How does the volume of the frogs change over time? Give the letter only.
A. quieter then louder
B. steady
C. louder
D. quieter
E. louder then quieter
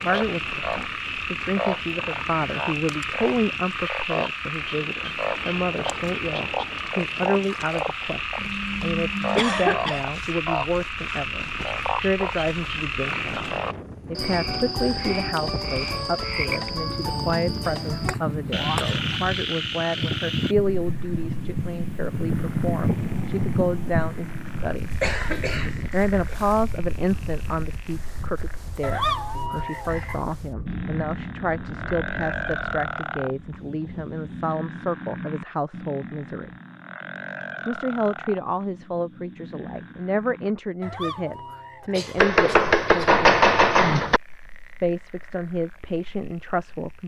D.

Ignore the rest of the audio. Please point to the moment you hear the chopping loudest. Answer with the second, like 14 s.
43 s.